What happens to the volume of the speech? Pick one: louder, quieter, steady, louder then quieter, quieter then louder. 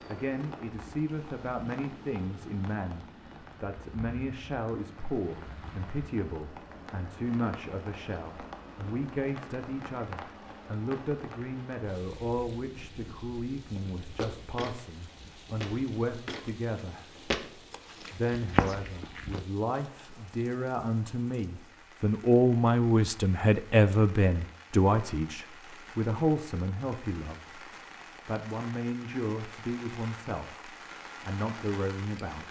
louder then quieter.